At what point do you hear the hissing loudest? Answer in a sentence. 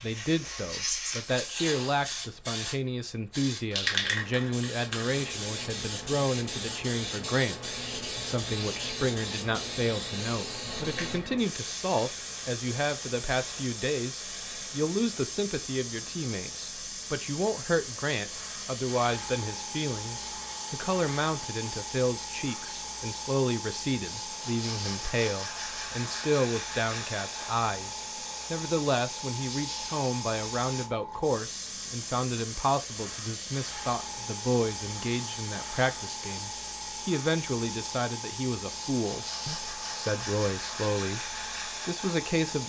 The volume of the hissing peaks at 4 seconds.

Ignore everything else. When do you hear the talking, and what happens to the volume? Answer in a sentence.
The talking can be heard from 0.0 to 42.6 s, at a steady volume.